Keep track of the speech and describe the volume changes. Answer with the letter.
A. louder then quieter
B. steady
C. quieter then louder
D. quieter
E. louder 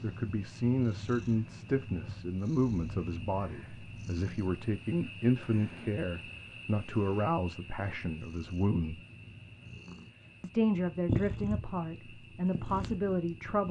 B.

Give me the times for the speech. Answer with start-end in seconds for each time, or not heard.
0.0-9.0, 10.4-13.6.